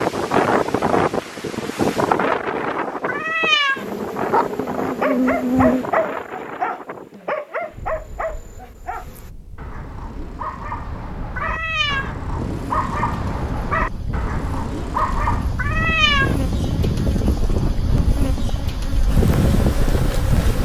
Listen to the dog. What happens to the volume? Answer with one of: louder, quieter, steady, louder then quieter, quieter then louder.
quieter then louder.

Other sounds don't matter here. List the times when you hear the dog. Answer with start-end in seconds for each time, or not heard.
4.3-15.6.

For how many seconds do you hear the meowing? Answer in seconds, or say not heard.
2 s.